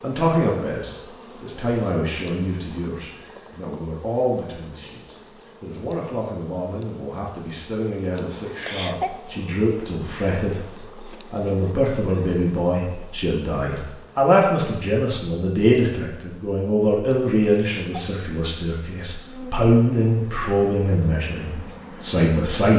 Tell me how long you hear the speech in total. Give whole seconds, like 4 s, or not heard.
23 s.